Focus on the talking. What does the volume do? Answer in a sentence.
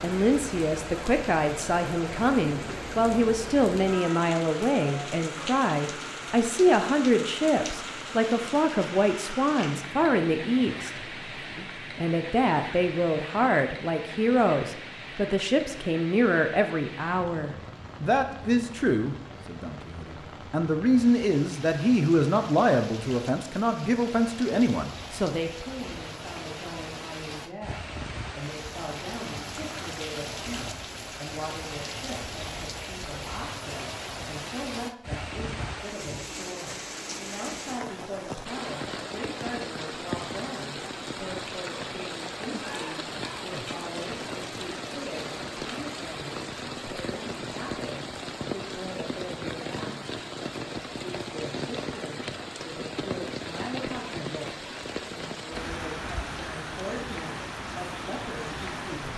The volume of the talking goes down.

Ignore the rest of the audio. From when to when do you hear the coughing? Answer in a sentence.
You can hear the coughing from 42.5 to 43.8 s.